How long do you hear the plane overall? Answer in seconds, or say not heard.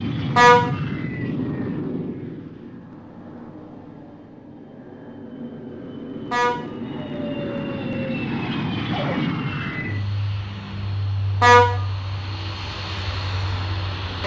14 s.